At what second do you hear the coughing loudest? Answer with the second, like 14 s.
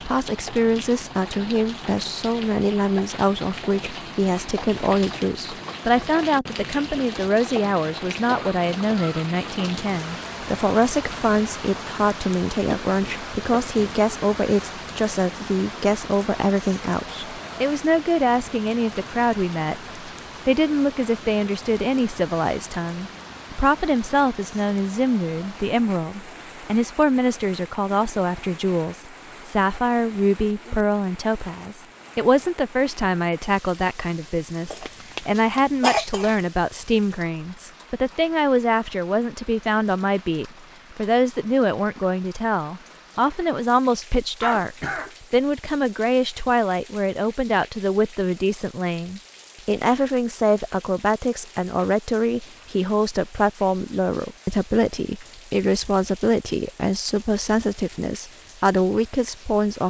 36 s.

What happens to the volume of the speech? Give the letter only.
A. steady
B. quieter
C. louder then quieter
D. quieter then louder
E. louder
A.